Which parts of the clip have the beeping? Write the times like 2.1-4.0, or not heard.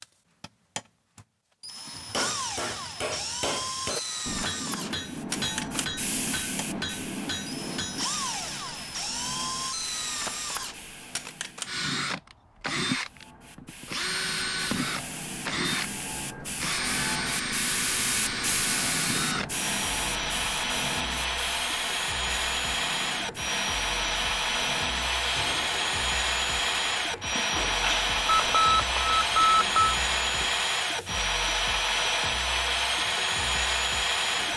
28.2-29.9.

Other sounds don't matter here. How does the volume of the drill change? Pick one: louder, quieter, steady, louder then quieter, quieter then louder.
louder.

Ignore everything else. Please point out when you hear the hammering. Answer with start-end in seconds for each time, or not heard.
1.9-8.1.